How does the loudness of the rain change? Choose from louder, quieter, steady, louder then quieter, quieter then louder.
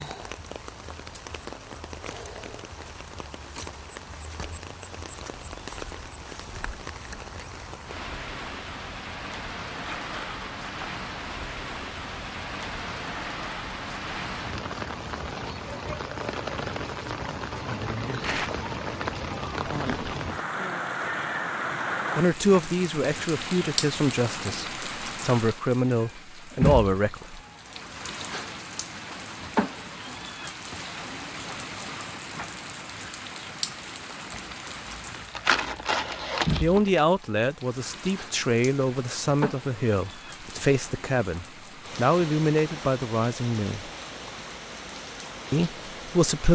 louder then quieter.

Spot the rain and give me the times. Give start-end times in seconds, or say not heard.
0.0-46.5.